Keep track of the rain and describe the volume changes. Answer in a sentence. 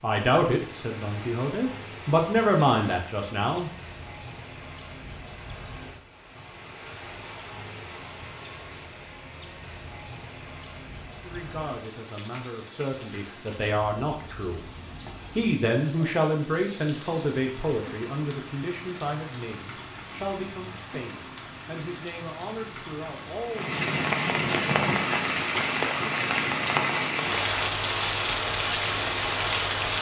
The loudness of the rain goes up.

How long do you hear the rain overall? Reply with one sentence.
The rain can be heard for 30 seconds in total.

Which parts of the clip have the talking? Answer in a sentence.
The talking can be heard from 0.0 to 3.7 s, from 11.2 to 14.7 s and from 15.3 to 23.8 s.